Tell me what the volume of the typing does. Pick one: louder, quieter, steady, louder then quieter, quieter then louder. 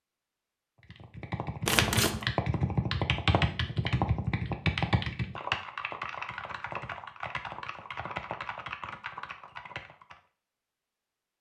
quieter.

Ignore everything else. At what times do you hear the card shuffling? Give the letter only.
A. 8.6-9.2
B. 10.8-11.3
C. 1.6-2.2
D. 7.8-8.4
C.